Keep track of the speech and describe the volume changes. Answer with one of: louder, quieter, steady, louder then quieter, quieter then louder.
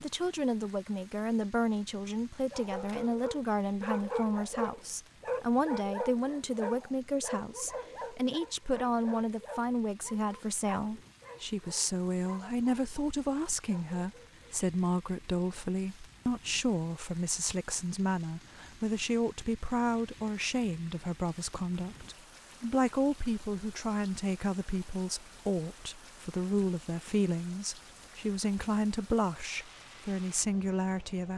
steady.